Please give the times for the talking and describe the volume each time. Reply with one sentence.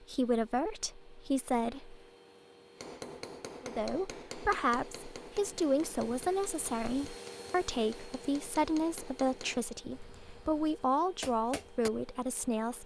You can hear the talking briefly from 0.0 to 2.0 s; and from 3.6 to 12.8 s, at a steady volume.